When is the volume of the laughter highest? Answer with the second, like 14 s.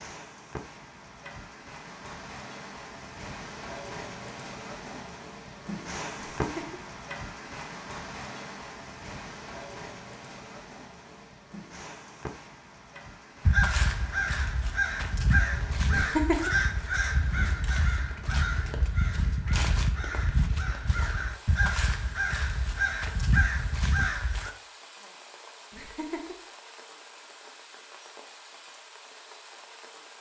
16 s.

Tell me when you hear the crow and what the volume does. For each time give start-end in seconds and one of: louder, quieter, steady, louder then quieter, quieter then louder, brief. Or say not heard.
13.4-24.5 steady.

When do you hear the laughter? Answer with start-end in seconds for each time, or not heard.
6.3-6.8, 15.9-16.5, 25.7-26.4.